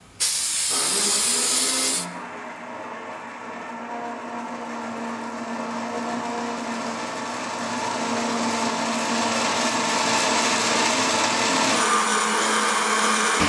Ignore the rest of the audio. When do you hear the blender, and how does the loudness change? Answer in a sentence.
The blender can be heard from 0.0 to 13.4 s, getting louder.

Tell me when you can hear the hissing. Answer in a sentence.
You can hear the hissing from 0.1 to 2.0 s.